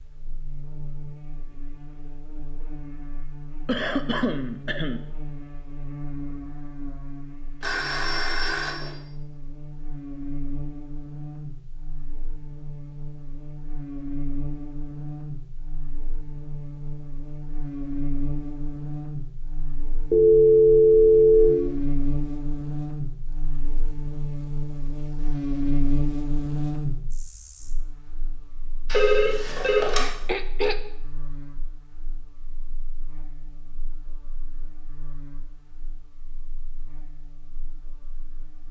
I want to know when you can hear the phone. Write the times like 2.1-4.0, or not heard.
7.6-8.9, 20.1-21.6, 28.9-30.1.